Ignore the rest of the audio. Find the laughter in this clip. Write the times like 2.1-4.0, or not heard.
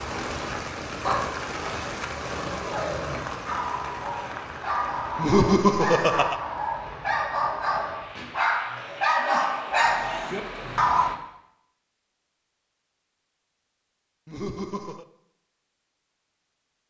5.2-6.3, 14.2-15.1.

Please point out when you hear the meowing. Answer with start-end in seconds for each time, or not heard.
not heard.